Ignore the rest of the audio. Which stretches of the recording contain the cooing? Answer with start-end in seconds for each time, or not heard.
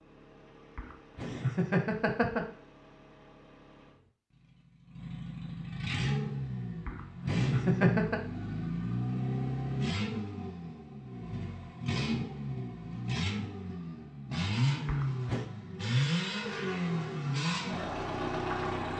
not heard.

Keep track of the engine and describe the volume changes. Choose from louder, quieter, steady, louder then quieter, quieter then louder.
louder.